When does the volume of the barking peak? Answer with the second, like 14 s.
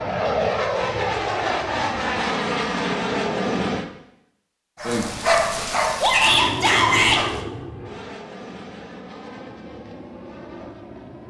5 s.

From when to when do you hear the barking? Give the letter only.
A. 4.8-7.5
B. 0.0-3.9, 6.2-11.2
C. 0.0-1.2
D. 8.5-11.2
A.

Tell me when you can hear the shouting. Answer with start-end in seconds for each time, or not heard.
6.0-7.2.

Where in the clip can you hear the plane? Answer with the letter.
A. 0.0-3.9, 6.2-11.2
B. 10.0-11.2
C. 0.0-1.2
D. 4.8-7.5
A.